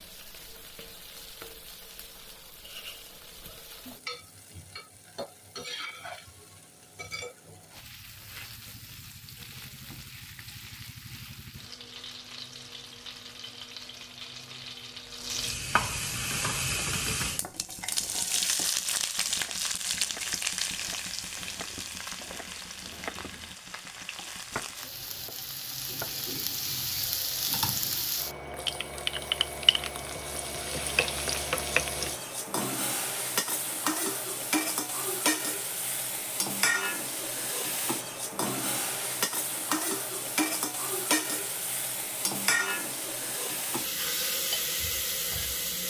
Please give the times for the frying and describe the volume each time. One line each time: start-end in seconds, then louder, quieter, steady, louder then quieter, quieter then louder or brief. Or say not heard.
0.0-45.8 louder.